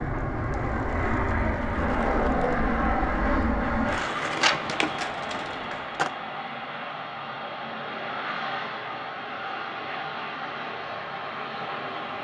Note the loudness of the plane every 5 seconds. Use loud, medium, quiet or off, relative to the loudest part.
loud, medium, medium.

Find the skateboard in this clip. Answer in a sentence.
The skateboard can be heard from 0.0 to 6.1 s.